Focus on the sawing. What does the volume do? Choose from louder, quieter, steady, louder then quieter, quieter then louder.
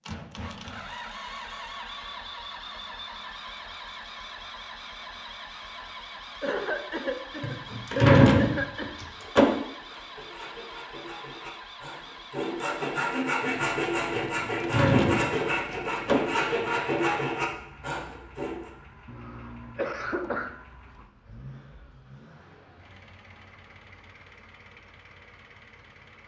louder.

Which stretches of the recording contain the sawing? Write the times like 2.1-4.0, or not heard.
9.8-18.7.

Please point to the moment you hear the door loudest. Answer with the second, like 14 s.
8 s.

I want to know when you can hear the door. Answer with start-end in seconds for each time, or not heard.
7.4-9.4, 14.2-16.1.